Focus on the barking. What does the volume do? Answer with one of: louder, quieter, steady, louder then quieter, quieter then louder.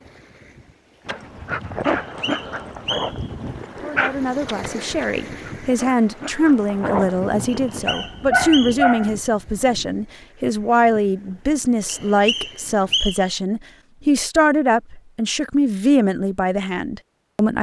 quieter then louder.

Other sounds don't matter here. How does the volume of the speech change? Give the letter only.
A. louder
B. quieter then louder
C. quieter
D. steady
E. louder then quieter
D.